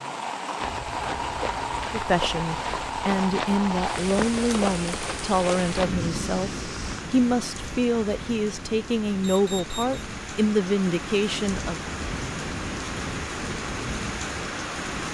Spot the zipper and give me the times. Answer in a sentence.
You can't hear the zipper here.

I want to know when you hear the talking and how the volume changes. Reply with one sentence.
You can hear the talking from 1.9 to 11.8 s, at a steady volume.